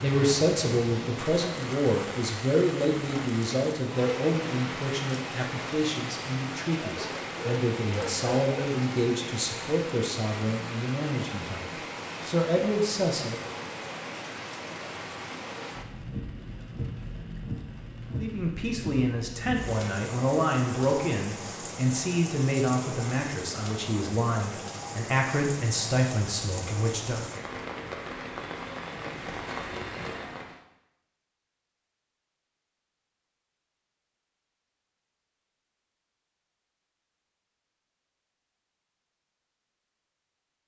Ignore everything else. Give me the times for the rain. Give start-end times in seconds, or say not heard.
0.0-30.6.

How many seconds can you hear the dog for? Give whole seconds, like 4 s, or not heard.
2 s.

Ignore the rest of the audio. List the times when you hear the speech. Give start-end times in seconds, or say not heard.
0.0-13.4, 18.1-27.2.